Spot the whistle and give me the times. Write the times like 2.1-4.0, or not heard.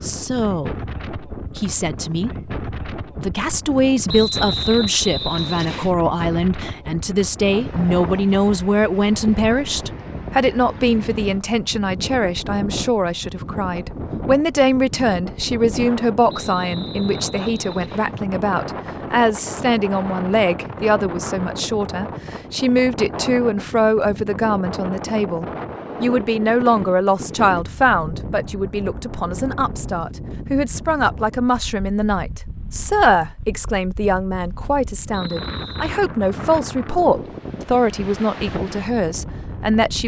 4.0-5.9, 16.2-18.1, 35.1-35.9.